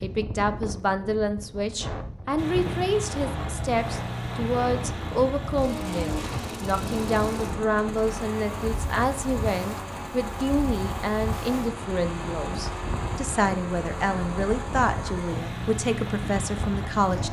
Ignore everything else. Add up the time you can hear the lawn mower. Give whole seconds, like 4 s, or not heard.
15 s.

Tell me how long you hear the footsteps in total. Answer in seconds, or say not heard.
not heard.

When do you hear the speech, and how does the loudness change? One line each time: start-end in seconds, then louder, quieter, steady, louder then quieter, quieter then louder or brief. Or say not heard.
0.0-17.2 steady.